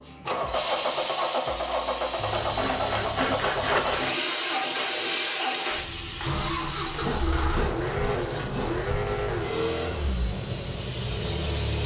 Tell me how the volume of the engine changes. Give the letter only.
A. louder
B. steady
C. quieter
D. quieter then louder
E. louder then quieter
B.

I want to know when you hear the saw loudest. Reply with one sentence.
The volume of the saw peaks at 4 seconds.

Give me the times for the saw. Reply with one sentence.
You can hear the saw from 2.1 to 4.2 s and from 6.9 to 9.7 s.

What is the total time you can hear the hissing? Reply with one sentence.
The hissing can be heard for 12 seconds in total.